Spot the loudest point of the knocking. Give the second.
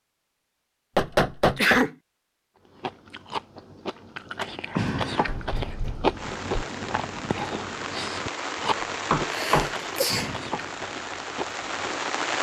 1 s.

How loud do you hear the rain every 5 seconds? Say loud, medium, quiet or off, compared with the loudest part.
off, loud, loud.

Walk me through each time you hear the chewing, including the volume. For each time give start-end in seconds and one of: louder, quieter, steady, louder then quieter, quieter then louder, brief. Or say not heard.
2.6-12.1 louder then quieter.